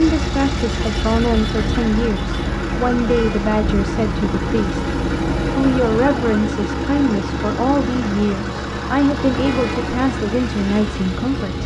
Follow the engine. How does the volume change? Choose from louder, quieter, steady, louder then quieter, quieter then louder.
steady.